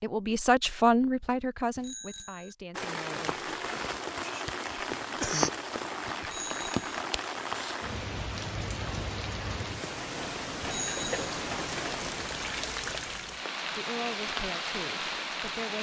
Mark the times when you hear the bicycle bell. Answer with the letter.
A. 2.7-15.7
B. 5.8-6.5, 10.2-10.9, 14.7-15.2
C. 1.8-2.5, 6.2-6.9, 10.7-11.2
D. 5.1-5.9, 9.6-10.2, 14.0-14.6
C.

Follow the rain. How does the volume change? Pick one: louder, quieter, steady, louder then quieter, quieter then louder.
steady.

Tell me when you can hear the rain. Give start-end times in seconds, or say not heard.
2.7-15.7.